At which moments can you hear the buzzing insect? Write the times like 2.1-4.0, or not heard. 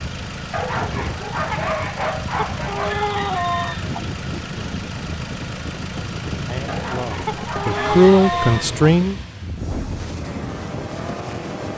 not heard.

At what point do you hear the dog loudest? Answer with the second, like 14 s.
2 s.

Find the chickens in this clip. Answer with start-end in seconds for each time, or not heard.
2.5-4.0, 7.2-8.8.